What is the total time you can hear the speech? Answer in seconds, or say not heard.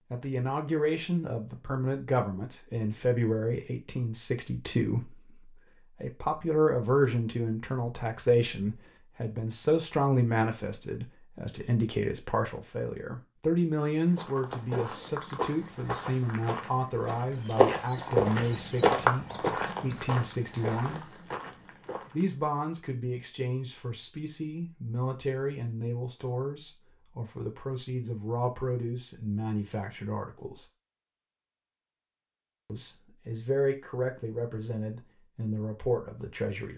34 s.